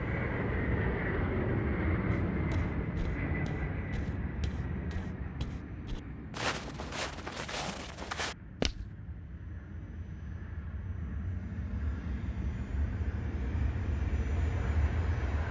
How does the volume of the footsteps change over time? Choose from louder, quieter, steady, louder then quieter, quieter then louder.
quieter then louder.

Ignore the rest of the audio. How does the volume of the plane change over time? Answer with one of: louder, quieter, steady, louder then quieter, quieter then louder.
quieter then louder.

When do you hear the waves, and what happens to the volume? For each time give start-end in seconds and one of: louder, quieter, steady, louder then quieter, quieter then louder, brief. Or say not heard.
not heard.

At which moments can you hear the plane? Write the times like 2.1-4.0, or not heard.
0.0-15.4.